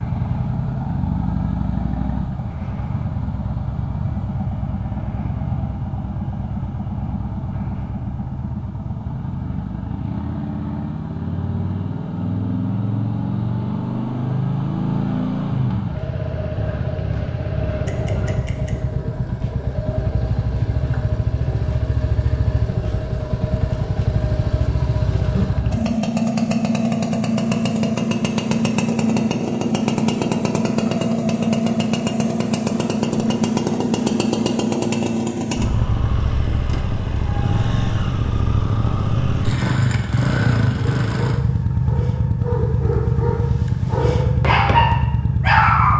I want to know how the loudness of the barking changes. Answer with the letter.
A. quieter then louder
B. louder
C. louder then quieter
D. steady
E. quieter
B.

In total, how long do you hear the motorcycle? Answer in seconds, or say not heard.
46 s.